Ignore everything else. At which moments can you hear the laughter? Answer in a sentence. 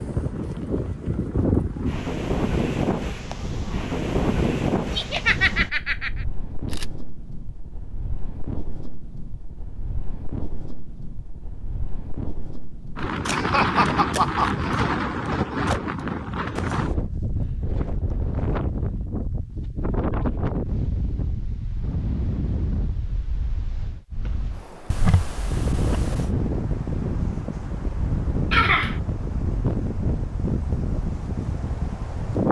The laughter can be heard from 5.0 to 6.2 s, from 13.3 to 14.9 s and from 28.5 to 29.0 s.